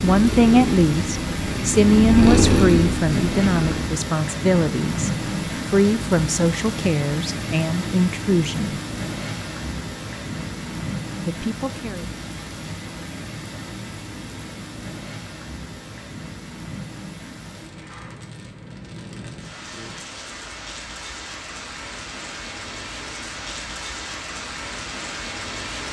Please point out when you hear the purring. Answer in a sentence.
You can hear the purring from 0.0 to 3.9 s.